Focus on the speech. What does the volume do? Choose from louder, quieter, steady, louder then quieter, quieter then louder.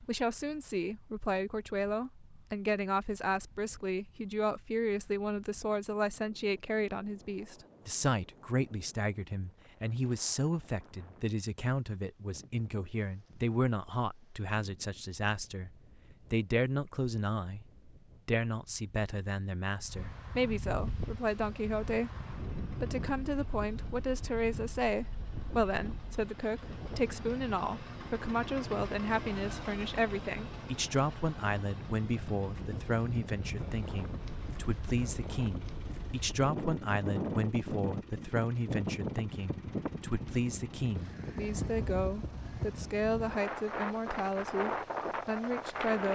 steady.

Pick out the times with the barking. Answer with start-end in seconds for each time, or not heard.
not heard.